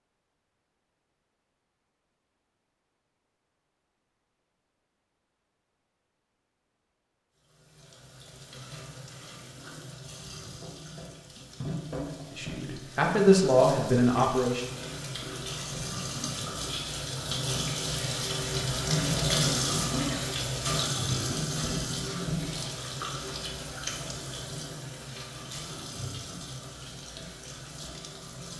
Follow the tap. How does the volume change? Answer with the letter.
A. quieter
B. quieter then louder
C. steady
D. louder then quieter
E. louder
D.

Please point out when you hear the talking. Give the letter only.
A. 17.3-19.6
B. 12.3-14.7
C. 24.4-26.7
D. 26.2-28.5
B.